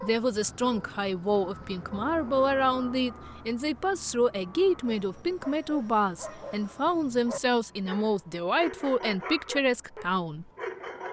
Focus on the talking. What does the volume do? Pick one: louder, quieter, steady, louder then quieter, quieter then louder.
steady.